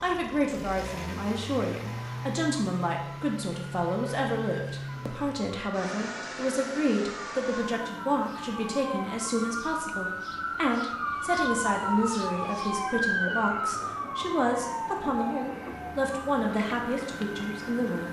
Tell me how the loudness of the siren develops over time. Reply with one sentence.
The volume of the siren goes up, then down.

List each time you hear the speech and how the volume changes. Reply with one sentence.
You can hear the speech from 0.0 to 18.0 s, at a steady volume.